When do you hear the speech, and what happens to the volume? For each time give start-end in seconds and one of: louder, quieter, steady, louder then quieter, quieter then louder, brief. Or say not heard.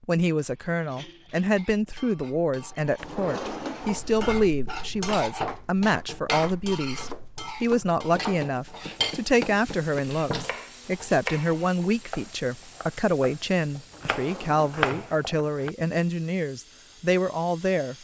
0.0-17.9 steady.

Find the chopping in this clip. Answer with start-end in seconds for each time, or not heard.
5.0-15.7.